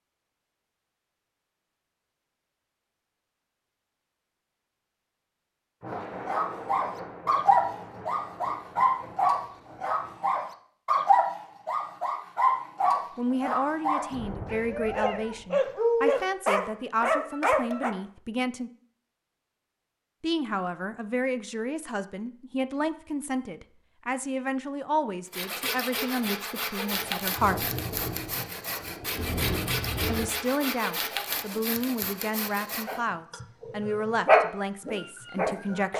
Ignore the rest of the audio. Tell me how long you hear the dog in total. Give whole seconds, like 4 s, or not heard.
15 s.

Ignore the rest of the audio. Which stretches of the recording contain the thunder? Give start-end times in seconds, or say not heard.
5.8-10.2, 14.1-15.4, 26.9-30.3.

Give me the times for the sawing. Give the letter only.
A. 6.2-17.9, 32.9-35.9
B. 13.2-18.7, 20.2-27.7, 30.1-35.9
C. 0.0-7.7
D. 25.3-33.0
D.